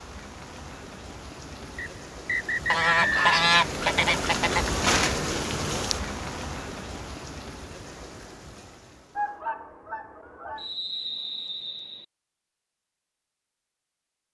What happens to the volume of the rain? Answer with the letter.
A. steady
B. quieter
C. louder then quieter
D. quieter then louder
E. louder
C.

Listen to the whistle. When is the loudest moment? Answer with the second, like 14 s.
3 s.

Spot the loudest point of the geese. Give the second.
3 s.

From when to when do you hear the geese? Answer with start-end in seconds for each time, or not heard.
2.7-4.7, 9.2-10.7.